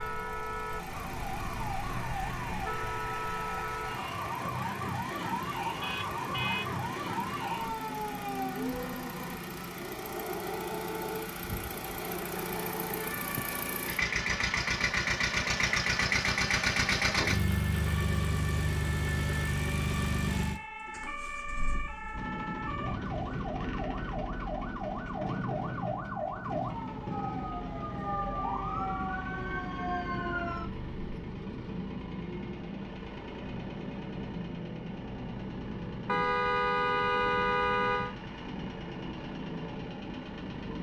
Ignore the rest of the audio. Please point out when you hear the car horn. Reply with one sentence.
You can hear the car horn from 5.8 to 6.7 s and from 36.0 to 38.1 s.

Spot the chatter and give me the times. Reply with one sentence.
The chatter can't be heard in this clip.